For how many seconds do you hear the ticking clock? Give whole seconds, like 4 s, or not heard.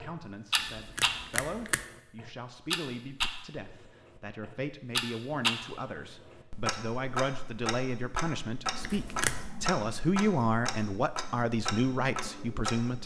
13 s.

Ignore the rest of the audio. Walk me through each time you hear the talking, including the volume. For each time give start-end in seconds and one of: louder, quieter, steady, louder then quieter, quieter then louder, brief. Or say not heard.
0.0-13.0 louder.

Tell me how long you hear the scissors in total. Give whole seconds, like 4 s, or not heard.
2 s.